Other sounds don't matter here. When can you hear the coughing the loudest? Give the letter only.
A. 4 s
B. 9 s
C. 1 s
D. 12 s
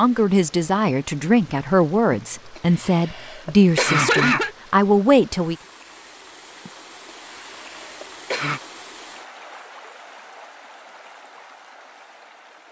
A.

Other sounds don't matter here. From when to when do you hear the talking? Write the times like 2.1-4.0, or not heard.
0.0-5.5.